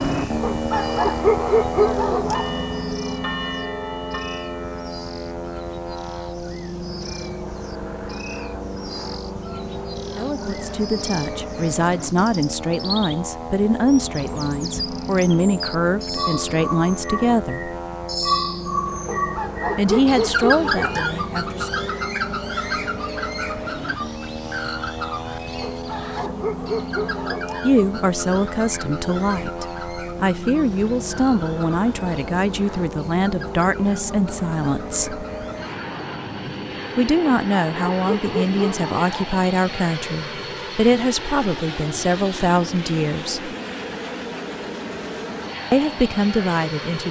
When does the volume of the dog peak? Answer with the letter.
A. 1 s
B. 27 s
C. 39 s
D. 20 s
A.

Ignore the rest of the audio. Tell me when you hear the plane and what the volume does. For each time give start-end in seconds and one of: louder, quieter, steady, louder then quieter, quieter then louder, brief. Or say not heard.
0.0-47.0 steady.